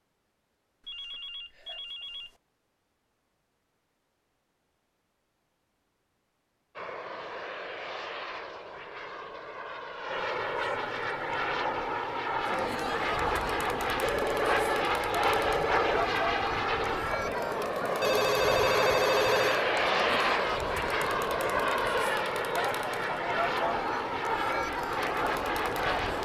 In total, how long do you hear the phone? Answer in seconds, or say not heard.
5 s.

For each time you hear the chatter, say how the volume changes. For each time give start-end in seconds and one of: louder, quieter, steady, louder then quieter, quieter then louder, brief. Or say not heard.
12.4-26.2 steady.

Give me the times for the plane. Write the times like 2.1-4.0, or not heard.
6.8-26.2.